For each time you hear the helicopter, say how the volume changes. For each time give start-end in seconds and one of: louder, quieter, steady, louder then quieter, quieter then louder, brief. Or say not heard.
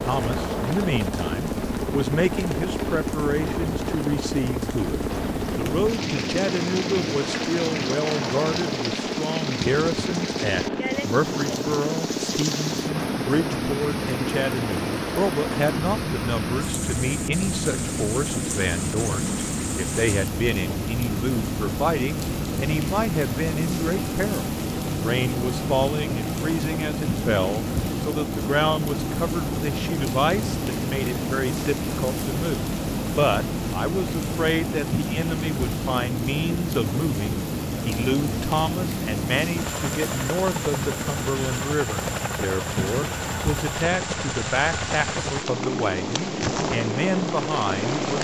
0.0-48.1 steady.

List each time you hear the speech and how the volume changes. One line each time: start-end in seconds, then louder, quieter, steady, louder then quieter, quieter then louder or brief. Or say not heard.
0.0-48.1 steady.